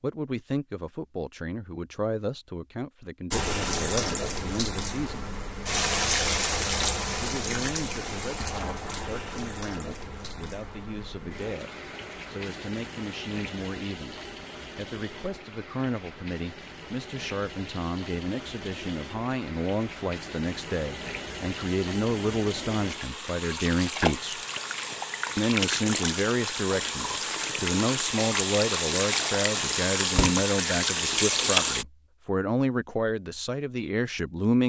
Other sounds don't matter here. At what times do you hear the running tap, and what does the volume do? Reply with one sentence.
The running tap can be heard from 3.3 to 31.9 s, getting quieter then louder.